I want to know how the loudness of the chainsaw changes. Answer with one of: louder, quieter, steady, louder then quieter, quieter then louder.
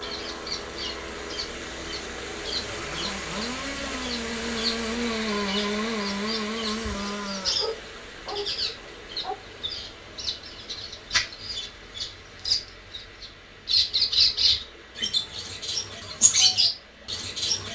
louder.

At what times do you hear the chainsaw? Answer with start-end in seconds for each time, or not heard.
0.0-7.5.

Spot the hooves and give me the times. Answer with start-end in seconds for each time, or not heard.
not heard.